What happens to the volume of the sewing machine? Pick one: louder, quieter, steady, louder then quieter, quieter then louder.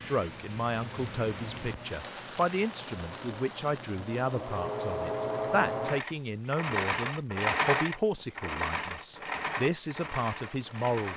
louder then quieter.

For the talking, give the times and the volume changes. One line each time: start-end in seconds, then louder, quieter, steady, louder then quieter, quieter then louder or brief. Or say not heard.
0.1-11.1 steady.